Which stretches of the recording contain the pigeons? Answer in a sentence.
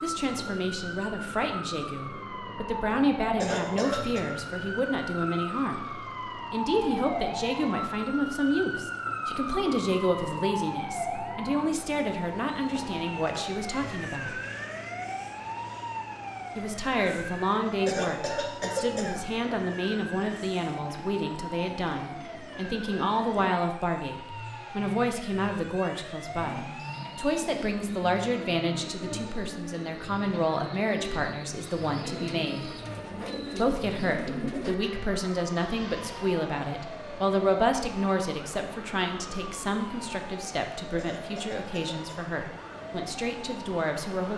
The pigeons can be heard from 26.4 to 34.8 s.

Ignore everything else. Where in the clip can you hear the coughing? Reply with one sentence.
You can hear the coughing from 3.4 to 4.2 s, from 17.9 to 19.2 s and from 41.0 to 42.3 s.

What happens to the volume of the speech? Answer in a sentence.
The volume of the speech stays about the same.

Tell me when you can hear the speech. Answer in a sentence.
You can hear the speech from 0.0 to 14.3 s, from 16.6 to 32.7 s and from 33.5 to 44.3 s.